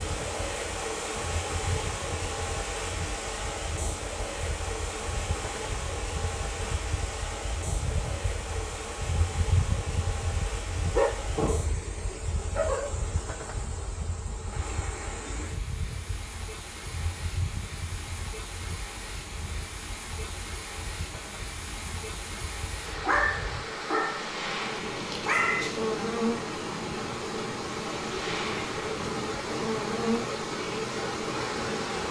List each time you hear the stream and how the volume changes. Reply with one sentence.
The stream can be heard from 0.0 to 32.0 s, getting quieter then louder.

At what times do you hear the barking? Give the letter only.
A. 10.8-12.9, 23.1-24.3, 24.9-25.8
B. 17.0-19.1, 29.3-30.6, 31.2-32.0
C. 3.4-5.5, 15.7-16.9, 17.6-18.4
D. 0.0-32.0
A.